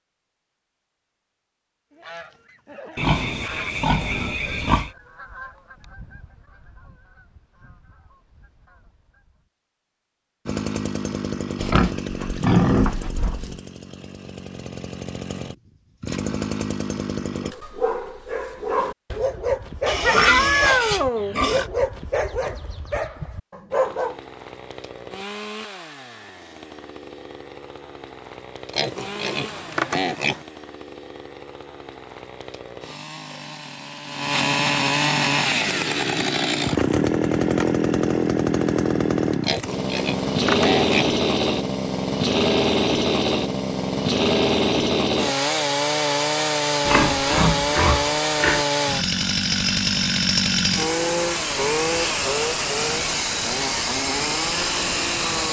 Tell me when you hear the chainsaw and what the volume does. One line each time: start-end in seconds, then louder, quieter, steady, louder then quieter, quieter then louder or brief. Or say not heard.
10.4-17.6 quieter then louder
23.7-55.4 louder.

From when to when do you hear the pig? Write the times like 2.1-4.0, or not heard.
3.0-4.9, 11.6-13.6, 19.9-21.6, 28.7-30.4, 39.4-41.1, 46.8-48.6.